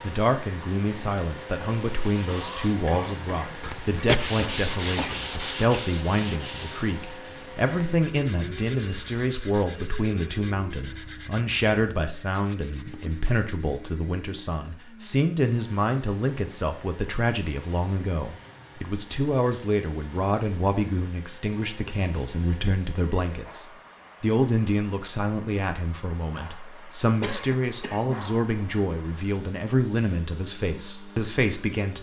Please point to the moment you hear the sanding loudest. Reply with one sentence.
The loudest moment of the sanding is at 4 seconds.